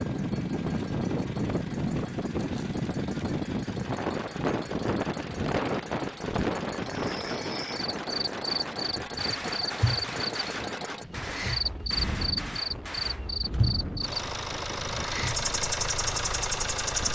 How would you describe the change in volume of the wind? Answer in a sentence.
The loudness of the wind goes down.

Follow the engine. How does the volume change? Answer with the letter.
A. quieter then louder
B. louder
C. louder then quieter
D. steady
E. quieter
B.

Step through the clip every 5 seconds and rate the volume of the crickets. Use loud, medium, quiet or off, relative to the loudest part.
off, loud, loud, loud.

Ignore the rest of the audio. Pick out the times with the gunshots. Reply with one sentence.
The gunshots can be heard from 9.2 to 13.3 s.